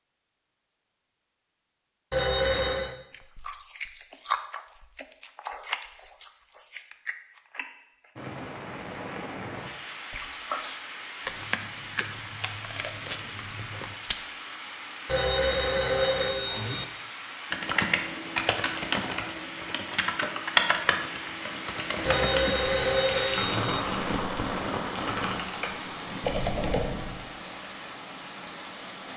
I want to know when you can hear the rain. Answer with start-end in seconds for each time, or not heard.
8.2-29.1.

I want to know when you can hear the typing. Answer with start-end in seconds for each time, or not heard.
17.5-27.2.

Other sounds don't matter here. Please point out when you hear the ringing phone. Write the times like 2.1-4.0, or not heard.
2.1-3.0, 15.1-16.9, 22.1-23.8.